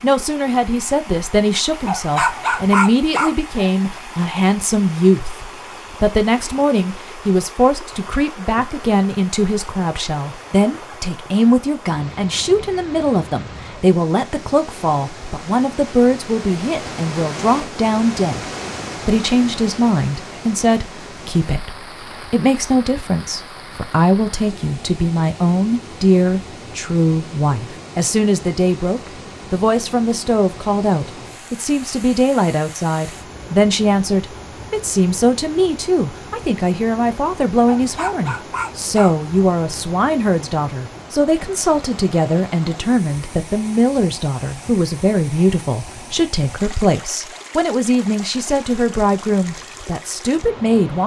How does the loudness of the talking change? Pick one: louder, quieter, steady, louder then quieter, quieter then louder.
steady.